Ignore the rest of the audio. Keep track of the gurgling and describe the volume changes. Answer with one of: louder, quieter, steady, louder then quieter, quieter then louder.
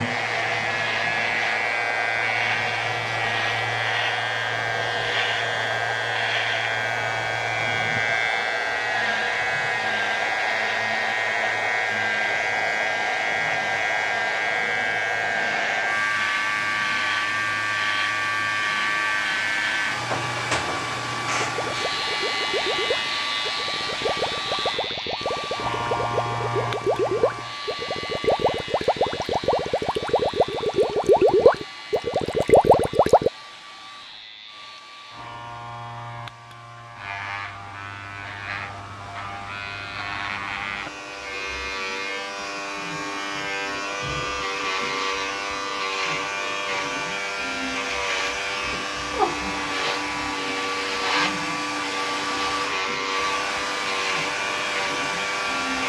louder.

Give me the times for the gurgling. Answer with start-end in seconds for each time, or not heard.
21.4-33.3.